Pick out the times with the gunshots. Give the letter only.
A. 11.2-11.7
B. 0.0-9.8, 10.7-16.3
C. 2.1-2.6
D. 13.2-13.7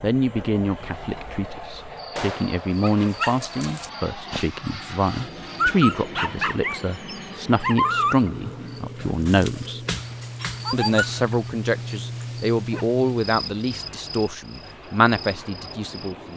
C.